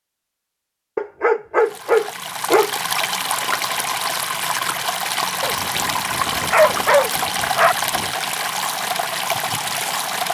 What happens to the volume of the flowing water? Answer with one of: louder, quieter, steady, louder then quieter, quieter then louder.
steady.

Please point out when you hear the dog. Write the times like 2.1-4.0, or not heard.
0.9-2.8, 5.4-8.1.